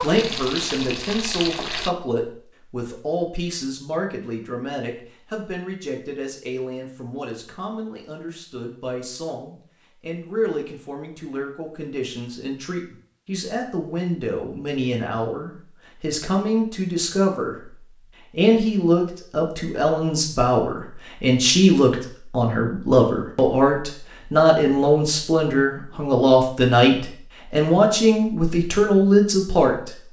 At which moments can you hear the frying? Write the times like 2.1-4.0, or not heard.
0.0-1.9.